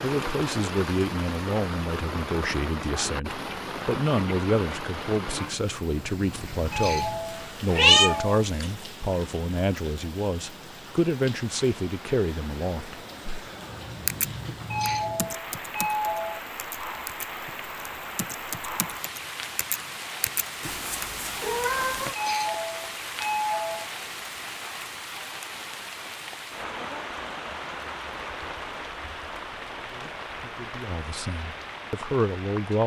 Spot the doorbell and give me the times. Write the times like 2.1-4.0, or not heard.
6.7-8.4, 14.7-16.4, 22.1-23.9.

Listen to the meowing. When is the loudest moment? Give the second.
8 s.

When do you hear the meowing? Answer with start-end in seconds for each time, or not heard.
7.7-8.7, 20.6-22.1.